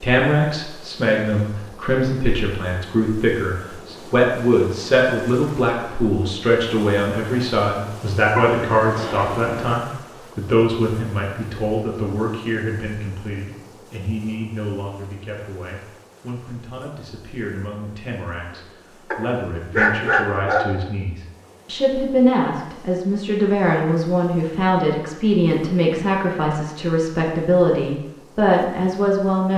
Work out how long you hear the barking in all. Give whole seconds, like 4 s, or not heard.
3 s.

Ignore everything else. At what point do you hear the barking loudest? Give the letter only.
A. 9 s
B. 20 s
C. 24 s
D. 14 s
B.